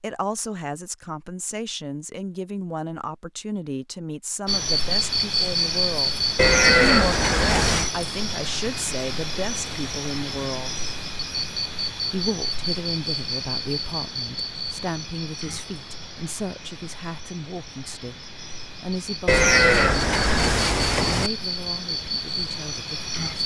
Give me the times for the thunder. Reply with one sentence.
You can't hear the thunder here.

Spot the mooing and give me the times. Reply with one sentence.
You can hear the mooing from 6.3 to 7.9 s and from 19.2 to 21.3 s.